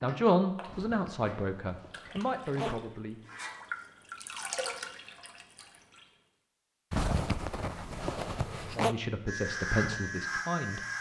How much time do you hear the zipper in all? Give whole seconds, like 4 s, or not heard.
4 s.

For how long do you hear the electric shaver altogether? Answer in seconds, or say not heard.
2 s.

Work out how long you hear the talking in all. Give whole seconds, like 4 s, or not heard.
5 s.